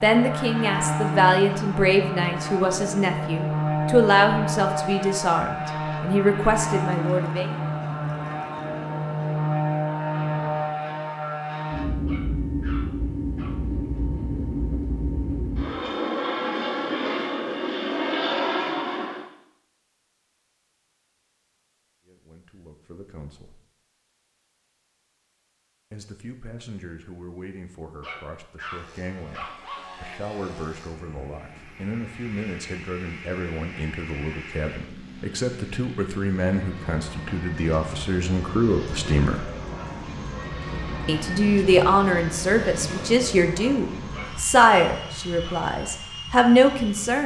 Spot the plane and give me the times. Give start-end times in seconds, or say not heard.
0.0-19.2, 28.6-47.2.